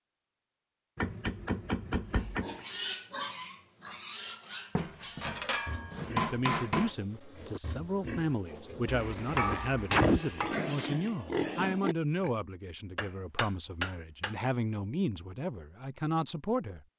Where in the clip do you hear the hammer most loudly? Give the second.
10 s.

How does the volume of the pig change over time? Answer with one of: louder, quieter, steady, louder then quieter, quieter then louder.
quieter then louder.